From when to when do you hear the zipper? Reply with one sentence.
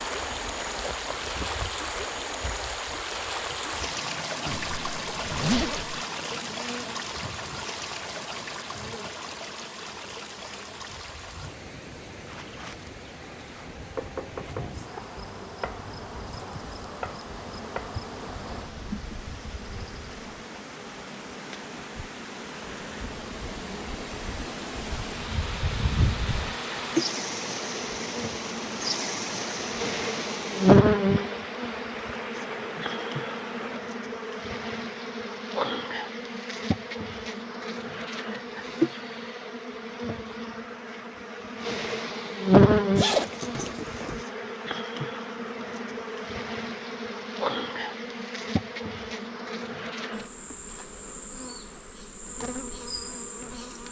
You can hear the zipper from 4.5 to 6.0 s and from 43.0 to 44.2 s.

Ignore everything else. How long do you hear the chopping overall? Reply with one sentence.
The chopping can be heard for 5 seconds in total.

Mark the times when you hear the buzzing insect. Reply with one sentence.
The buzzing insect can be heard from 0.0 to 53.8 s.